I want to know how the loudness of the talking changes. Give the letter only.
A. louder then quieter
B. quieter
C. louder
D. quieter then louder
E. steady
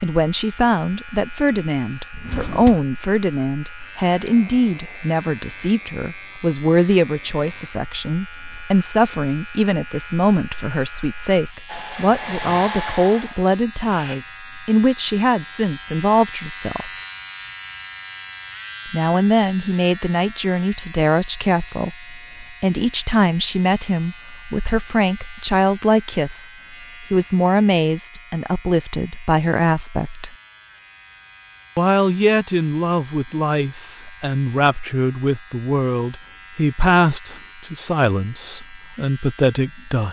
E.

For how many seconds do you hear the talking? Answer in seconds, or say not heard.
37 s.